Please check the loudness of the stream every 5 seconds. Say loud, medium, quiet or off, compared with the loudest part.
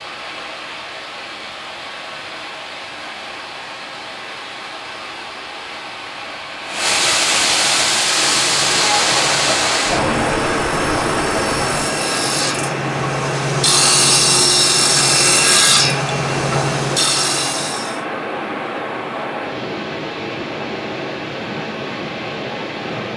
quiet, loud, loud, medium, medium.